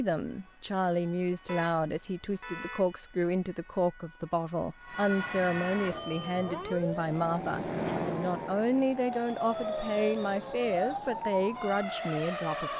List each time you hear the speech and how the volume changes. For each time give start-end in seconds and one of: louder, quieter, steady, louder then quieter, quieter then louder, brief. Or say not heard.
0.0-12.7 steady.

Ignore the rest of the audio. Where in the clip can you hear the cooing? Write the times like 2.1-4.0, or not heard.
not heard.